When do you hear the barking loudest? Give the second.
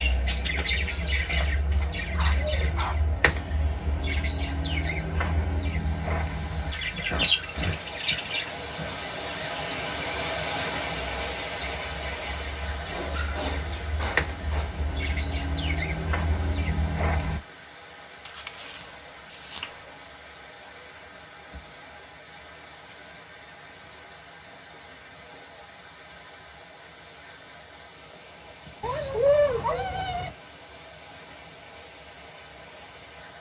29 s.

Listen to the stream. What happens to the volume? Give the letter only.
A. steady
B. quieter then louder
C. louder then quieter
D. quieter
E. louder
D.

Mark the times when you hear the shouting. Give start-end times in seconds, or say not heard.
not heard.